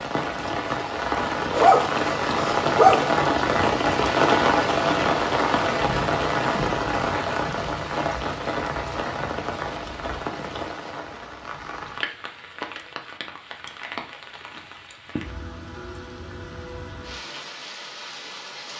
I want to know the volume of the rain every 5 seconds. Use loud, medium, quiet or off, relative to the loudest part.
loud, loud, quiet, quiet.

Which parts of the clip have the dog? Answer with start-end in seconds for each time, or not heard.
1.6-3.1.